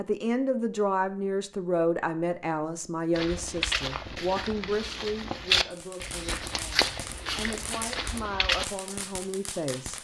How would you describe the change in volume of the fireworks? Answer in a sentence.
The volume of the fireworks stays about the same.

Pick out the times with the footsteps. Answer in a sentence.
You can hear the footsteps from 3.1 to 8.7 s.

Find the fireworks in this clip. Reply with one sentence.
The fireworks can be heard from 5.7 to 9.9 s.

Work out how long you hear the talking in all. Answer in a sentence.
You can hear the talking for 10 seconds altogether.